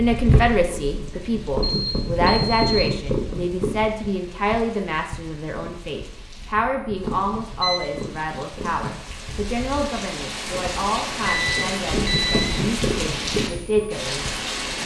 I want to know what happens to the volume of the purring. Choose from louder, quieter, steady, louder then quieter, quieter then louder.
quieter then louder.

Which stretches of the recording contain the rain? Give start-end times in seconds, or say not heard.
0.0-14.8.